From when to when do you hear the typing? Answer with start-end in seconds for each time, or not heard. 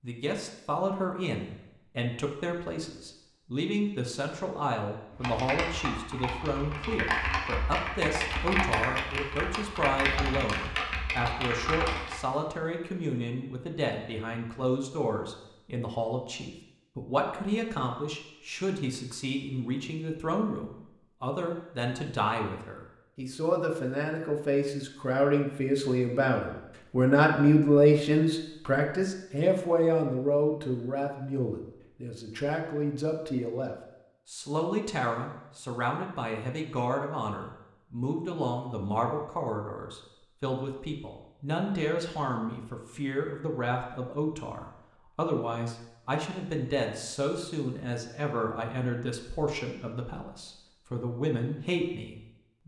5.1-12.2.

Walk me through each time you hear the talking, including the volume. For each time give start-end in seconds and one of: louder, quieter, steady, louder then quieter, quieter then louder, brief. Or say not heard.
0.0-52.6 louder then quieter.